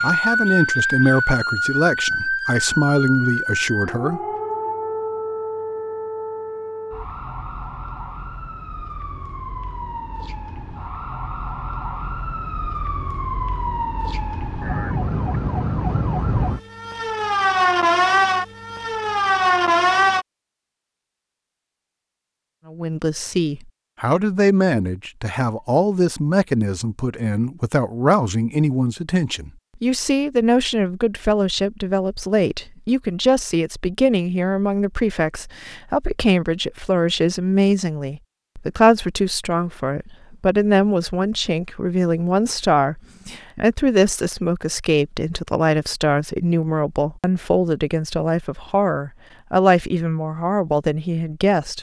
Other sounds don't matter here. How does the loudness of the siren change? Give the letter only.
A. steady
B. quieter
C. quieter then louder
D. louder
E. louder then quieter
C.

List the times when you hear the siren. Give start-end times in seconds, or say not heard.
0.0-20.2.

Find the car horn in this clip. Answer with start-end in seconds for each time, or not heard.
not heard.